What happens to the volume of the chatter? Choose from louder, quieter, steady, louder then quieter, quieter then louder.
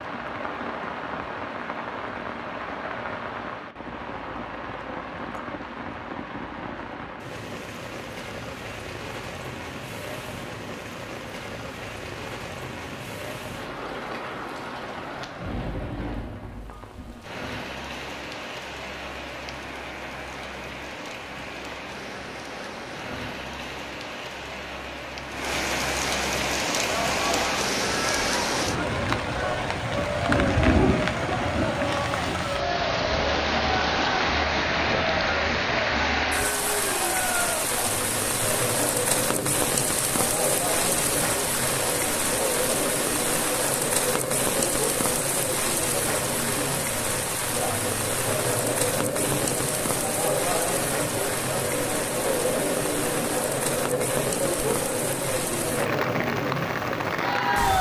steady.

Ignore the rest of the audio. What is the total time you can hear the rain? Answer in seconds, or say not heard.
58 s.